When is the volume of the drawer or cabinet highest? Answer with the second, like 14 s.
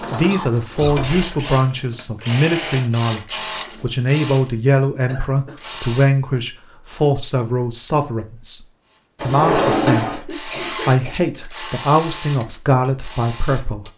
10 s.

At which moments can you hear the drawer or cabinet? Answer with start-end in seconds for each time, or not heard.
0.8-1.2, 9.2-10.2.